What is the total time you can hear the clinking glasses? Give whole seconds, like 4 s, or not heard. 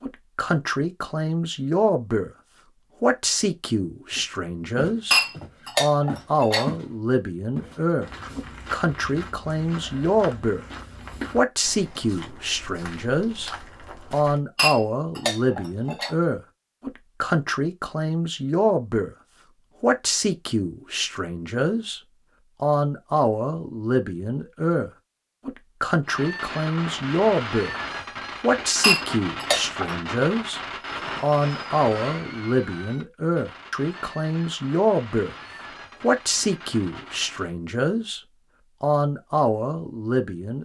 4 s.